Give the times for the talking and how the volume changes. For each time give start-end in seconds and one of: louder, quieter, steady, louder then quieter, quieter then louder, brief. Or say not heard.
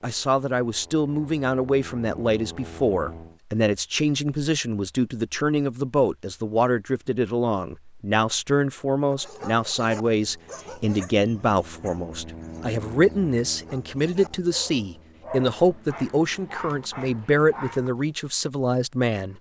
0.0-19.3 steady.